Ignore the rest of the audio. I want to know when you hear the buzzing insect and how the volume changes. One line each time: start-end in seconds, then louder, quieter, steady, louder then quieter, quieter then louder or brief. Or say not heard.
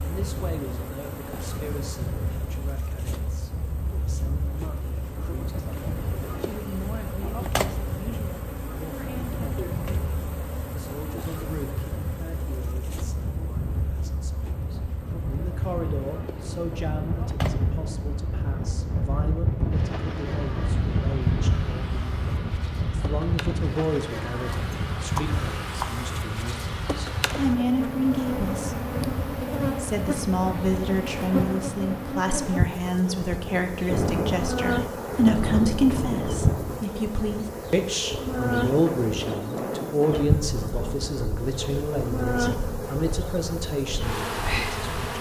0.0-45.1 louder.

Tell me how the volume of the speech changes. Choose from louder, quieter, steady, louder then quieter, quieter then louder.
louder.